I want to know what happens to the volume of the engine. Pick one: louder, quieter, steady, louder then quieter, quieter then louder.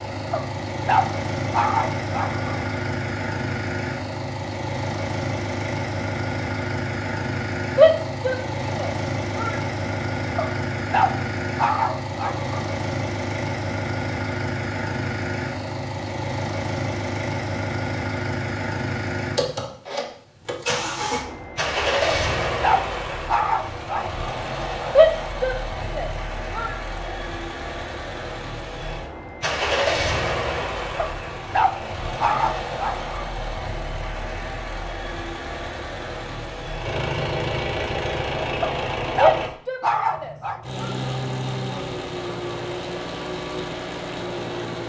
steady.